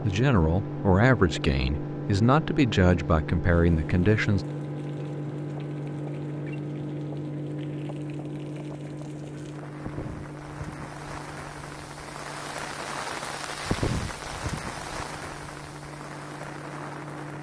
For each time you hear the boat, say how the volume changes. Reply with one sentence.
The boat can be heard from 0.0 to 17.3 s, getting quieter.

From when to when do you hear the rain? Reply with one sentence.
The rain can be heard from 3.5 to 17.3 s.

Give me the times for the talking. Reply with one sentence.
The talking can be heard from 0.0 to 4.5 s.